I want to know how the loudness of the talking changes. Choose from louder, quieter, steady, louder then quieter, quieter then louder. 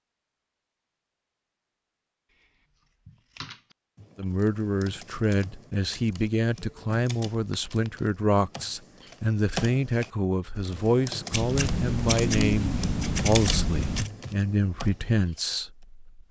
steady.